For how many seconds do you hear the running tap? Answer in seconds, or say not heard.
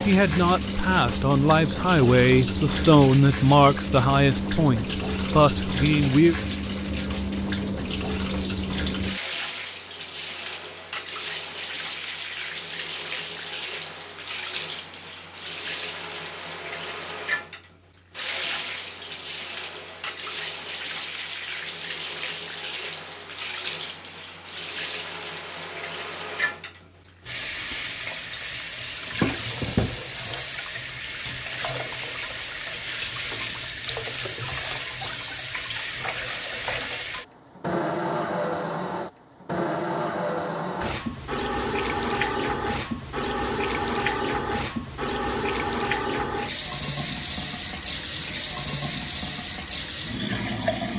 51 s.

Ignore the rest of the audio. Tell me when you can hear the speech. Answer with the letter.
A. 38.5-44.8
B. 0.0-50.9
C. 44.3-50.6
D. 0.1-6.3
D.